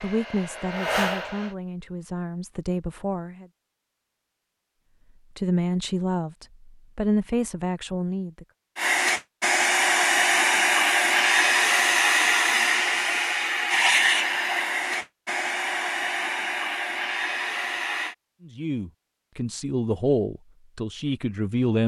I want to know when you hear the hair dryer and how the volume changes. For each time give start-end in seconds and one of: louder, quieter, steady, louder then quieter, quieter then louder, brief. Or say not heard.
0.0-1.6 brief
8.8-18.1 quieter.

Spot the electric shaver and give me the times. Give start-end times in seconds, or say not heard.
not heard.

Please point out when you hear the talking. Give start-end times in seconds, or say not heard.
0.0-3.5, 5.3-8.4, 18.4-21.8.